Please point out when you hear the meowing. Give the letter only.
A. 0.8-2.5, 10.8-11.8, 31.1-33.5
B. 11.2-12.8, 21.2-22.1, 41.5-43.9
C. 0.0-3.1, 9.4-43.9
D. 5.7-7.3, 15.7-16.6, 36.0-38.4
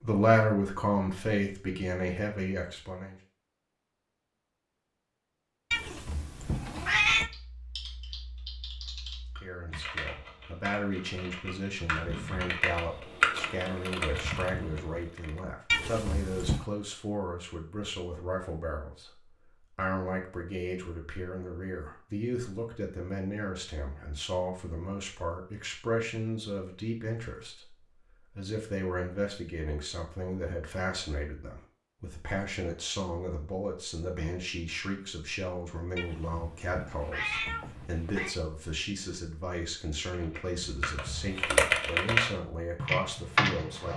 D.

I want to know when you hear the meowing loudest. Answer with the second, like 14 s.
7 s.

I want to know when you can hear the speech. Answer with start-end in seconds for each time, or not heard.
0.0-3.1, 9.4-43.9.